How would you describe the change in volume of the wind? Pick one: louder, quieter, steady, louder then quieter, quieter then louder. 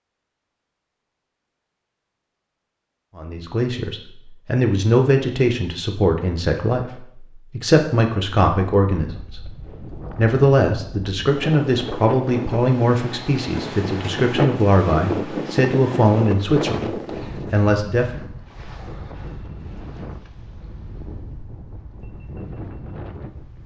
louder then quieter.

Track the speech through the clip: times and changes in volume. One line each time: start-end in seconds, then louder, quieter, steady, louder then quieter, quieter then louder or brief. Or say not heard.
3.1-18.2 steady.